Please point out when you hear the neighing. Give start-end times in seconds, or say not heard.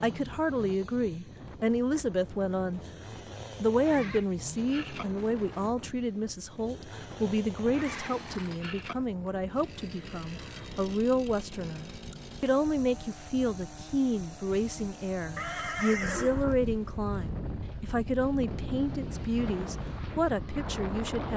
3.8-5.0, 7.7-8.9, 15.3-16.6.